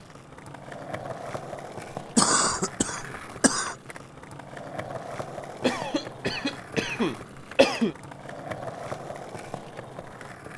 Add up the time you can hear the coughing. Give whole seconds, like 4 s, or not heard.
4 s.